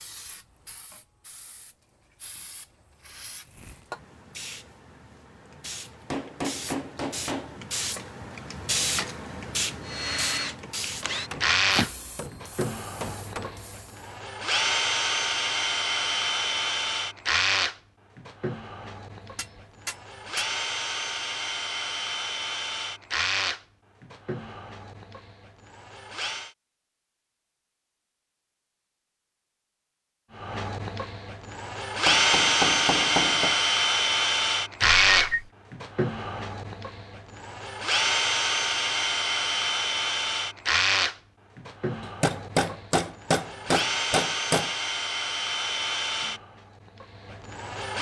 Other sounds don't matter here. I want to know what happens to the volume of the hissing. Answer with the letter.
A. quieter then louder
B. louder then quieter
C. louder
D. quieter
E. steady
B.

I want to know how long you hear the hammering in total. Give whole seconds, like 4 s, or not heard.
9 s.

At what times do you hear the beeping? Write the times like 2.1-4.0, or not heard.
34.8-35.5.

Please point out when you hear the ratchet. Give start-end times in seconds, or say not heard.
not heard.